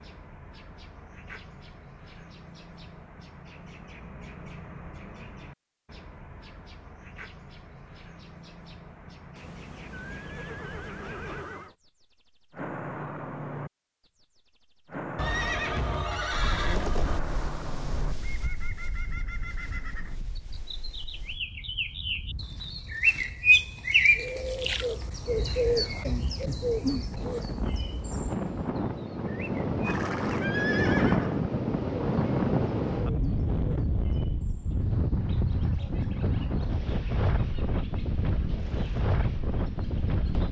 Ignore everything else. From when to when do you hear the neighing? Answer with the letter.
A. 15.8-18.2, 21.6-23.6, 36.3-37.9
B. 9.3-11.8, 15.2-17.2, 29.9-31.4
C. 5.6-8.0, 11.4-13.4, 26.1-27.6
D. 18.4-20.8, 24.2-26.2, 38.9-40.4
B.